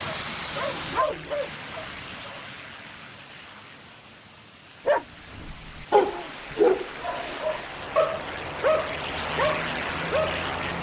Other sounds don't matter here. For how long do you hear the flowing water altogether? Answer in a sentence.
You can hear the flowing water for 11 seconds altogether.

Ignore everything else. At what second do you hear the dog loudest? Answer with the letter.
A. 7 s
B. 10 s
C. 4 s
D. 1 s
A.